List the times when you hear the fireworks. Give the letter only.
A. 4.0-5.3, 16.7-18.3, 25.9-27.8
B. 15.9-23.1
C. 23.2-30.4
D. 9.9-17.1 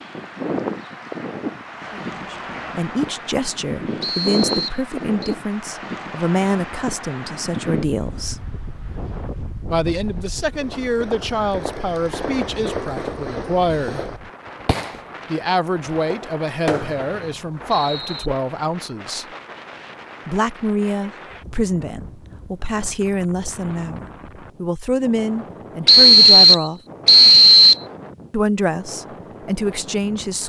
D.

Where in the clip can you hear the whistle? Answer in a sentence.
The whistle can be heard from 4.0 to 5.3 s, from 16.7 to 18.3 s and from 25.9 to 27.8 s.